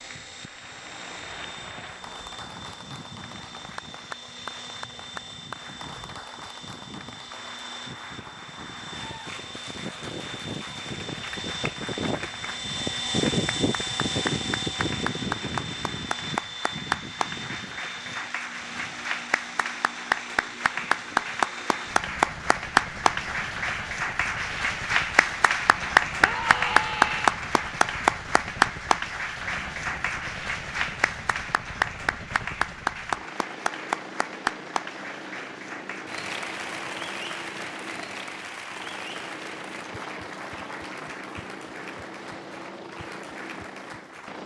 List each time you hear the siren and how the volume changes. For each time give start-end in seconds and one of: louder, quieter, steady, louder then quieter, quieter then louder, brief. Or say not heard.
not heard.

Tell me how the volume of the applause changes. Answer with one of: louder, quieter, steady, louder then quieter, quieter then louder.
louder then quieter.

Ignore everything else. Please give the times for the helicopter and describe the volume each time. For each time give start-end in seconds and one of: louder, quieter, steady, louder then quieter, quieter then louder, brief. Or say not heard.
0.0-44.4 louder then quieter.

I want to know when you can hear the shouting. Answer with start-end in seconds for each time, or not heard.
26.2-27.4.